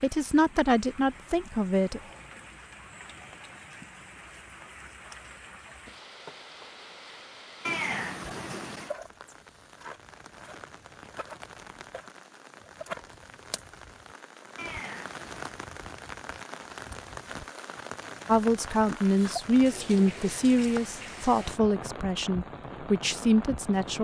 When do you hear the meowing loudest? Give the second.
8 s.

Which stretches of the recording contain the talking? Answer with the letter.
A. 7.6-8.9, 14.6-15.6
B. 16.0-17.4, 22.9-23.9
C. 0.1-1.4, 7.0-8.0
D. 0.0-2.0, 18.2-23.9
D.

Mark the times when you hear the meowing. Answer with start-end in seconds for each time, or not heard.
7.6-8.9, 14.6-15.6.